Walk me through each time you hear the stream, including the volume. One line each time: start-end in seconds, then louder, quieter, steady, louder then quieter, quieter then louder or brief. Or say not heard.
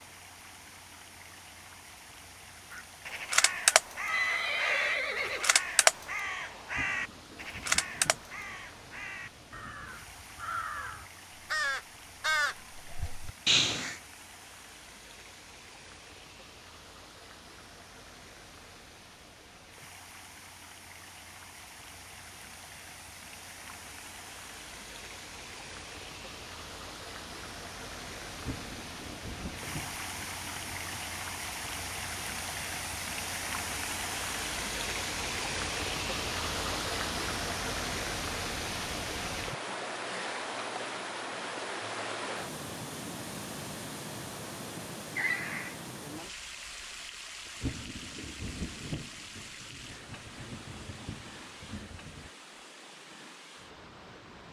0.0-54.4 louder then quieter.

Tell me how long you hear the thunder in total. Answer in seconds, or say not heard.
11 s.